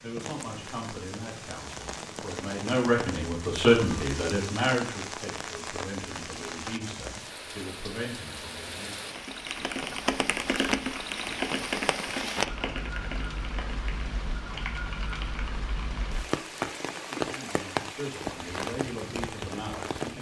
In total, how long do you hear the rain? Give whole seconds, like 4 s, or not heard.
20 s.